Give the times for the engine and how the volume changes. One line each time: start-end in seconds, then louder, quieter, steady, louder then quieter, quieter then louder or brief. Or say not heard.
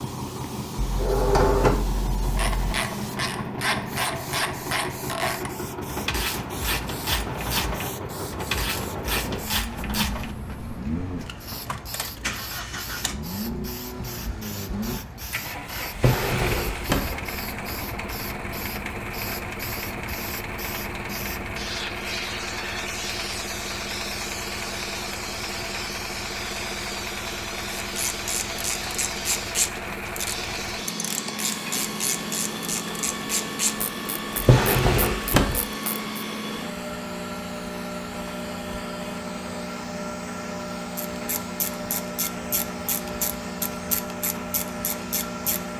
0.0-45.7 steady.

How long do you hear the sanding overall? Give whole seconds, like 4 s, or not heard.
not heard.